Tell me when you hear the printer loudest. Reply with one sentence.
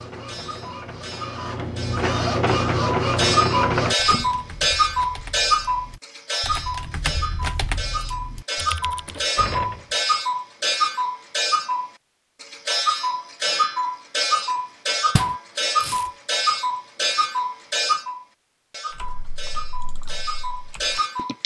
The loudest moment of the printer is at 3 seconds.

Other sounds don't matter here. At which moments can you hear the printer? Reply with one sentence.
You can hear the printer from 0.0 to 4.0 s.